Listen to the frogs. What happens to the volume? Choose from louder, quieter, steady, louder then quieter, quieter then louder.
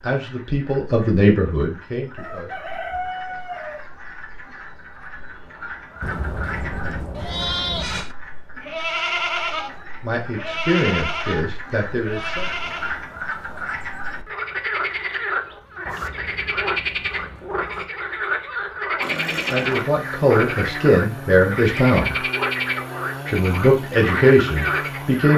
louder.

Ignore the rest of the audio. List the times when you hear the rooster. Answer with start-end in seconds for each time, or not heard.
2.1-3.9.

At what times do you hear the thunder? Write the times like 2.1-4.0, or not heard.
6.0-8.1, 15.8-17.9.